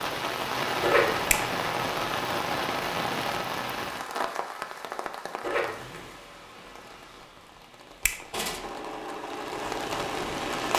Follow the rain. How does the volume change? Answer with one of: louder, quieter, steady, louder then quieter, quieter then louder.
quieter then louder.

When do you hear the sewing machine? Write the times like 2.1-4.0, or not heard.
8.6-10.7.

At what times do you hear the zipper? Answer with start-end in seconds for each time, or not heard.
0.8-1.4, 5.4-6.0.